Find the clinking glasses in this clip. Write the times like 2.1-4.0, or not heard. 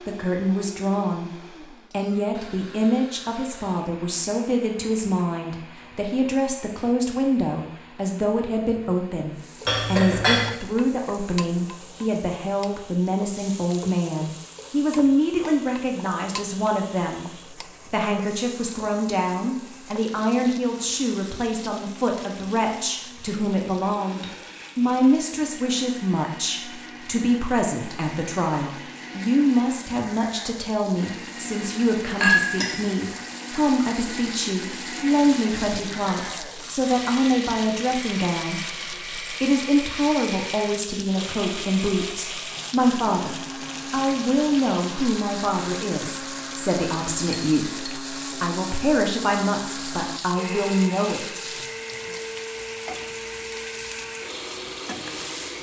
9.7-10.5, 32.2-32.8, 47.3-47.9.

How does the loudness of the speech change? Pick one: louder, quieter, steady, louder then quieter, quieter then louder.
steady.